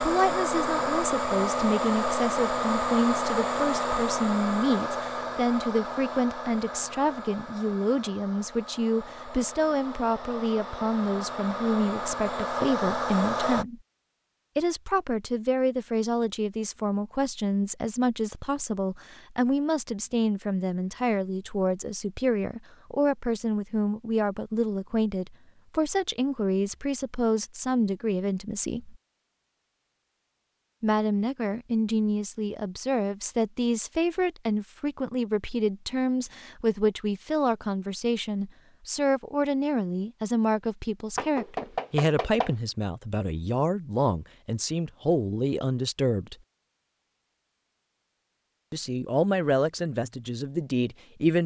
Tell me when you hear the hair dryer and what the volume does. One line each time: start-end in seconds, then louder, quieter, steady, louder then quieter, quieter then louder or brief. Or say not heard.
0.0-13.7 quieter then louder.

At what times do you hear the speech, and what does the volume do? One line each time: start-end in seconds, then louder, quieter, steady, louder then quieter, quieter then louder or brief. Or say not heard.
0.0-13.8 steady
14.6-28.9 steady
30.8-46.4 steady
48.7-51.4 brief.